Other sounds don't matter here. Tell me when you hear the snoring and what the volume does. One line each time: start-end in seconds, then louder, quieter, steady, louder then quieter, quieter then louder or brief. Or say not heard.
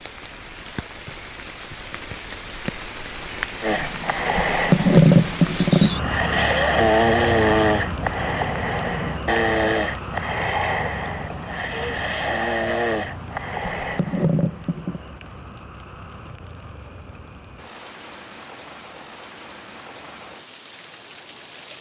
3.6-15.1 quieter.